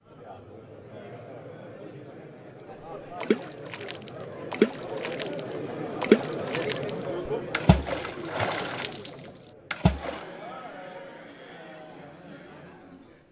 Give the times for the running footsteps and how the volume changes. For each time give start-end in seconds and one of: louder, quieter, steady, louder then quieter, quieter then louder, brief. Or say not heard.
not heard.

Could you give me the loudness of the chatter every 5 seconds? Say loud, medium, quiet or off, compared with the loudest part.
medium, loud, medium.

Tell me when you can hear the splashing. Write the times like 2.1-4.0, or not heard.
3.2-10.2.